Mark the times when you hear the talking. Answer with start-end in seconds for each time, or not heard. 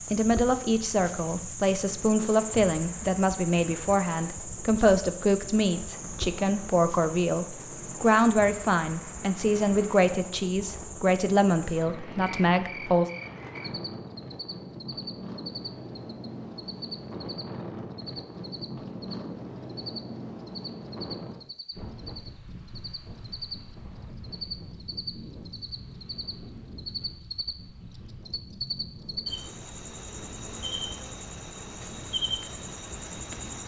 0.1-13.1.